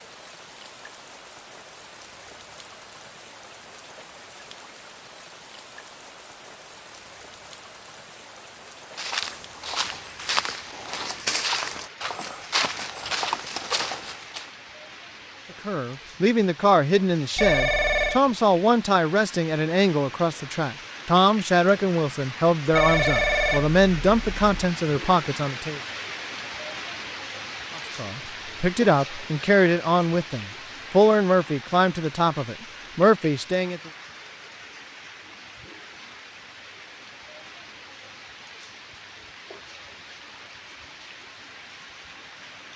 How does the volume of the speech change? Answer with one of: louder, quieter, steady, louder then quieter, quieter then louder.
steady.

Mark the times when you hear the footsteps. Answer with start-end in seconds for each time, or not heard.
8.9-14.5.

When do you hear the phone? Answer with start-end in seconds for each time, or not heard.
17.4-18.2, 22.7-24.6.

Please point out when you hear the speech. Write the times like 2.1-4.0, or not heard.
15.7-25.8, 27.8-33.9.